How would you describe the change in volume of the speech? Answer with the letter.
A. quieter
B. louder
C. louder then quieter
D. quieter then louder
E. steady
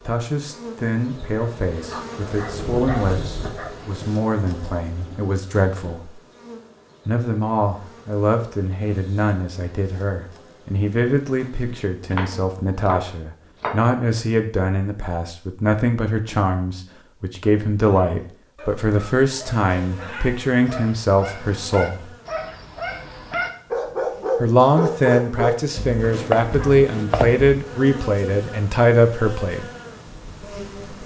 B.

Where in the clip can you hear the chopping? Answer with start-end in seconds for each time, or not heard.
12.1-13.9, 25.8-27.6.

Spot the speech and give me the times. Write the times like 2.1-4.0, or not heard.
0.1-6.2, 7.0-22.1, 24.4-29.7.